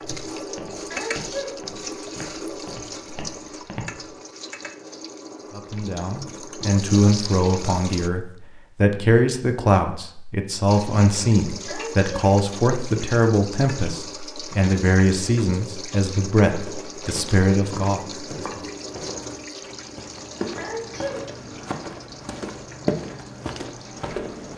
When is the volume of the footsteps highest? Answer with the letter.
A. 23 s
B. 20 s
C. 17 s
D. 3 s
A.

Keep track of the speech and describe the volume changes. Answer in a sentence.
The loudness of the speech stays about the same.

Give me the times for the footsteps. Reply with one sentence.
The footsteps can be heard from 0.0 to 4.2 s and from 16.4 to 24.5 s.